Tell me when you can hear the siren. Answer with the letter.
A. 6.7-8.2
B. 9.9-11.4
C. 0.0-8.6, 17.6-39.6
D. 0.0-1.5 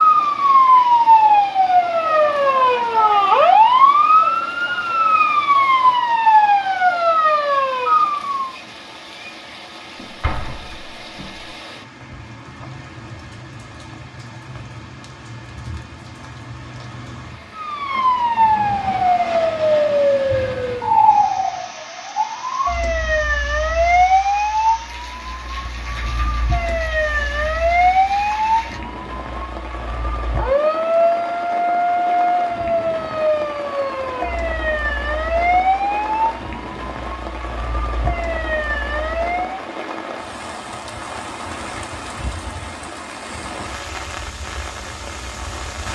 C.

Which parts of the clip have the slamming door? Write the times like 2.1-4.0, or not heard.
9.9-11.4.